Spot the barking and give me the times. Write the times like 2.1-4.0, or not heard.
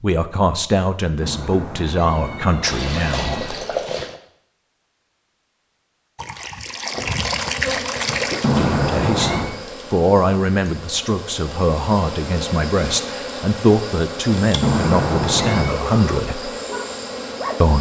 15.7-17.7.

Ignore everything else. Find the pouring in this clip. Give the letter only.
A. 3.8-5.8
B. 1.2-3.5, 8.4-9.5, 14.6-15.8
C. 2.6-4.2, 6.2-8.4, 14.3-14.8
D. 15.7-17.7
C.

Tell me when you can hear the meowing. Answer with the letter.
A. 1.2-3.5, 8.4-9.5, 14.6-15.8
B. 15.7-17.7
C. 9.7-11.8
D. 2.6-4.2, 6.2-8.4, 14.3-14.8
A.